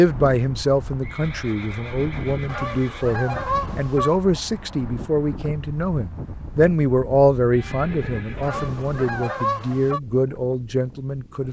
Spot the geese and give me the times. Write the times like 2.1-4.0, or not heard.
2.5-4.2, 8.4-10.0.